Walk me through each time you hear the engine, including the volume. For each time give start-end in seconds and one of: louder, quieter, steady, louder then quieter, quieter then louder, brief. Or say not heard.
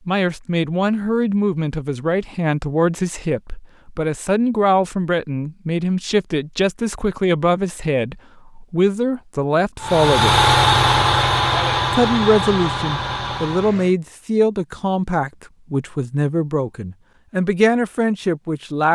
9.8-13.9 quieter.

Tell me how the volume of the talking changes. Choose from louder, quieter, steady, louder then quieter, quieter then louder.
steady.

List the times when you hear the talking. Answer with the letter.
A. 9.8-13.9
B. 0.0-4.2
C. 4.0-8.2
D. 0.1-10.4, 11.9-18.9
D.